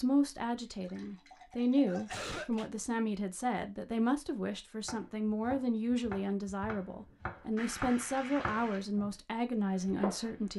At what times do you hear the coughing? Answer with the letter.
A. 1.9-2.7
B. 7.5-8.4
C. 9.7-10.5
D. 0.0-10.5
A.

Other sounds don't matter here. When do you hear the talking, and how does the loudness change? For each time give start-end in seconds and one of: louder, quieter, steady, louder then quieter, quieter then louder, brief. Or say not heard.
0.0-10.5 steady.